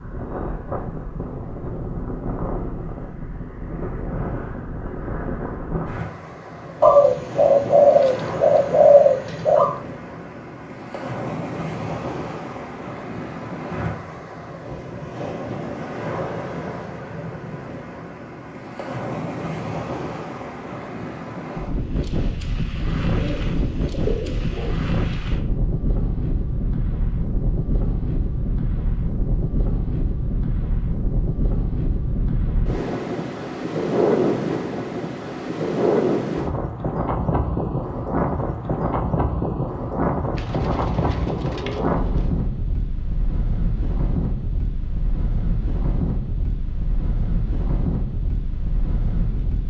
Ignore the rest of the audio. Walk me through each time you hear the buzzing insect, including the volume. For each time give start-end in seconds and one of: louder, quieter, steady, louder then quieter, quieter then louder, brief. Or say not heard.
not heard.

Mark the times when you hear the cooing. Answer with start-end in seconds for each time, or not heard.
6.8-9.8, 23.1-24.8, 40.4-42.3.